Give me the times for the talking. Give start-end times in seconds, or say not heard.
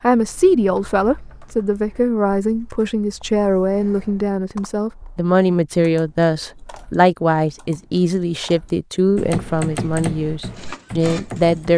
0.0-11.7.